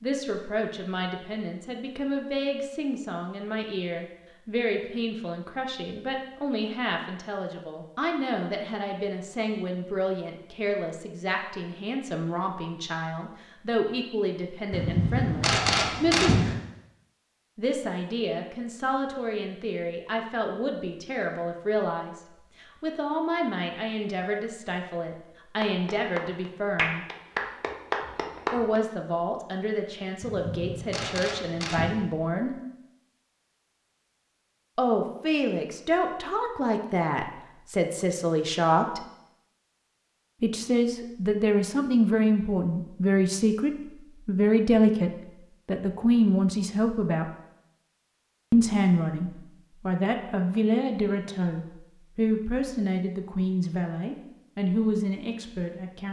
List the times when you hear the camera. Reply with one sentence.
You can hear the camera from 14.7 to 16.6 s and from 30.2 to 31.9 s.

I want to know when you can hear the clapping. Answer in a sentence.
The clapping can be heard from 25.6 to 28.8 s.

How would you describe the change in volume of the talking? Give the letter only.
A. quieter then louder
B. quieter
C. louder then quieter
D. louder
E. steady
D.